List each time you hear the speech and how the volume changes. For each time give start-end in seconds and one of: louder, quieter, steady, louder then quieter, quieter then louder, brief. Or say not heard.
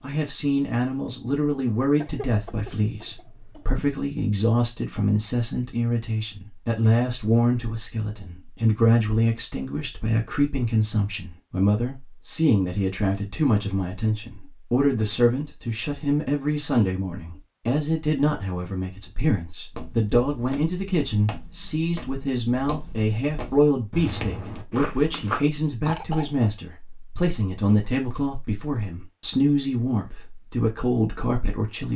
0.0-31.9 steady.